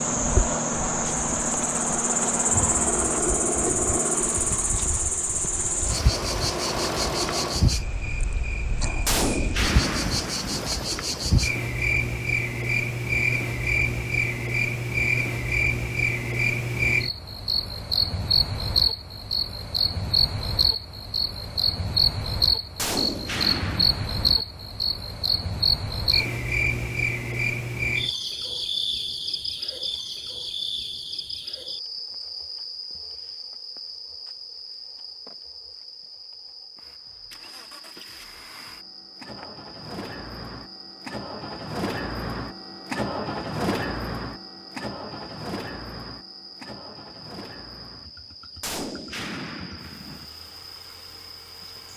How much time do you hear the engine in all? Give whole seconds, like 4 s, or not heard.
23 s.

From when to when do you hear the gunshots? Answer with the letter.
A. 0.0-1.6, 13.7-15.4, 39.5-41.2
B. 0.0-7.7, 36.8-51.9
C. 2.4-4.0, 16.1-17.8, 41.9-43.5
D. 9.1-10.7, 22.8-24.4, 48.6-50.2
D.